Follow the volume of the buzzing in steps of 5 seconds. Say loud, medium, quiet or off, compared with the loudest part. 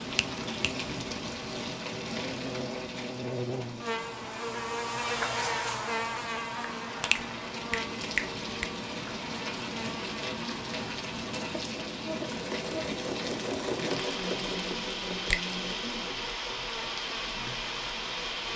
loud, loud, medium, medium.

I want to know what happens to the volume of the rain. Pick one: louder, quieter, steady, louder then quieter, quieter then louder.
quieter then louder.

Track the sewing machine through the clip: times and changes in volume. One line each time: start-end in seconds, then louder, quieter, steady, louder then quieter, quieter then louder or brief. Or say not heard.
12.1-18.3 quieter.